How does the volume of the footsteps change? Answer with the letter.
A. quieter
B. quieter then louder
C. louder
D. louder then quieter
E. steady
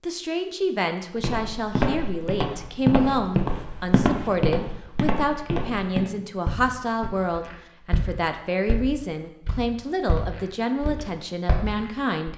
A.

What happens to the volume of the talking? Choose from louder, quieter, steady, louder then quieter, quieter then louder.
steady.